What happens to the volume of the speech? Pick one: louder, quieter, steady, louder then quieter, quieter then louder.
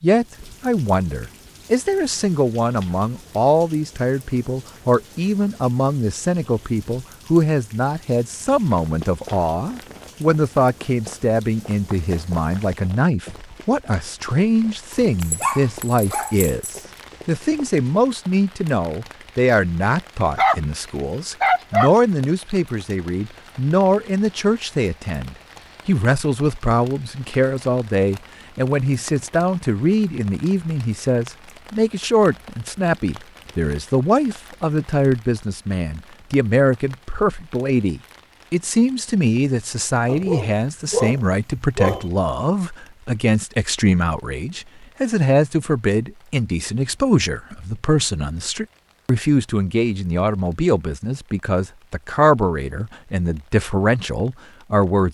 steady.